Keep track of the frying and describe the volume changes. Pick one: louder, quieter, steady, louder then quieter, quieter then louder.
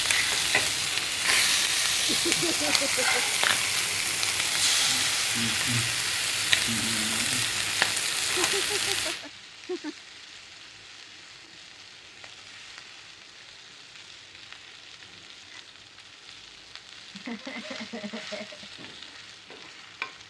quieter.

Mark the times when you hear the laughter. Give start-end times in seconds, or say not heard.
2.0-3.2, 8.3-9.9, 17.0-18.6.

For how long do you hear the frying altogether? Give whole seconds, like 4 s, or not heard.
20 s.